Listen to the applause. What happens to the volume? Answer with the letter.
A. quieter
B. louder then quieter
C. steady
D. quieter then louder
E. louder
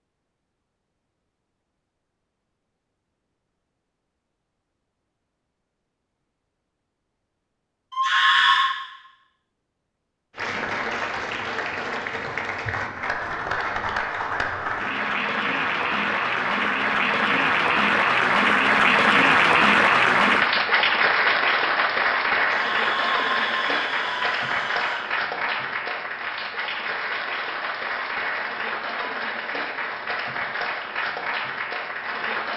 B.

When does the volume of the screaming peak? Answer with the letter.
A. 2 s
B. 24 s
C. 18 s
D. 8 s
D.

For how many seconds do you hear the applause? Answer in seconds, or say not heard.
22 s.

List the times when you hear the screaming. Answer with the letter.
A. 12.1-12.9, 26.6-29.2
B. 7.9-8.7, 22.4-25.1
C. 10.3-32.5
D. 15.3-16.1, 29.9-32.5
B.